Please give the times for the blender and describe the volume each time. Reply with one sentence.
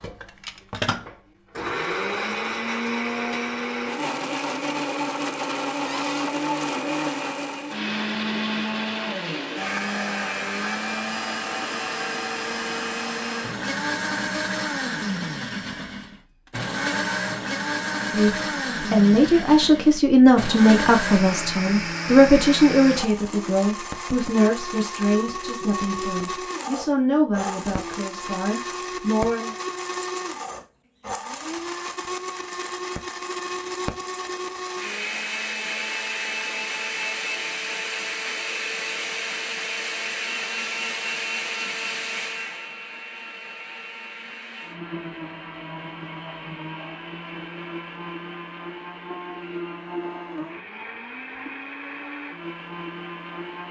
You can hear the blender from 0.0 to 53.6 s, getting quieter.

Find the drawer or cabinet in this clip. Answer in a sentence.
The drawer or cabinet can be heard from 5.8 to 6.2 s.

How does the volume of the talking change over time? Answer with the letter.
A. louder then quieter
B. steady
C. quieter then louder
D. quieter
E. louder
D.